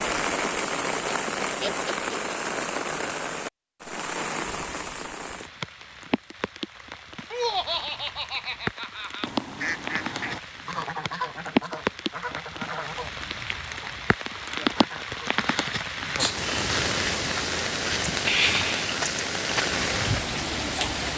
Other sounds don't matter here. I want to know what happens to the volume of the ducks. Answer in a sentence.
The loudness of the ducks goes down.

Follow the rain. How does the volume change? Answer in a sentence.
The volume of the rain goes down, then up.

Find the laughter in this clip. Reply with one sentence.
You can hear the laughter from 1.6 to 2.2 s, from 7.3 to 9.3 s and from 14.6 to 15.0 s.